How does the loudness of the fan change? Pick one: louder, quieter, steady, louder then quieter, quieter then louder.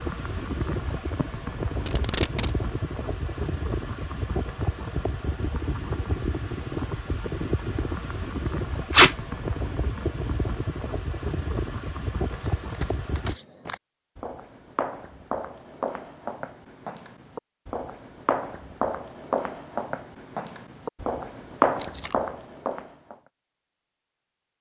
steady.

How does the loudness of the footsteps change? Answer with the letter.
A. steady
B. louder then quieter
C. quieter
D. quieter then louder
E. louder
E.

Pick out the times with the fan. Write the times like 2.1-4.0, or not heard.
0.0-13.3.